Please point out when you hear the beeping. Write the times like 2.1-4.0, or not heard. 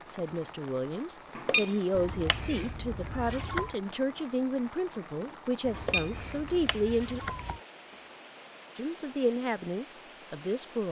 1.4-2.5, 5.7-6.8.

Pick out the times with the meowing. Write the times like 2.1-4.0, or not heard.
1.9-3.8, 5.7-7.6.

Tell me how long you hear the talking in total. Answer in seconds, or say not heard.
9 s.